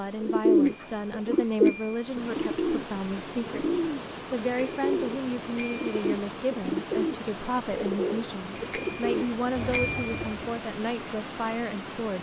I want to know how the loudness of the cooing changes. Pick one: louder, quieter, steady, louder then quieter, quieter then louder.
quieter.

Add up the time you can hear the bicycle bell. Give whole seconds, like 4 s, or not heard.
5 s.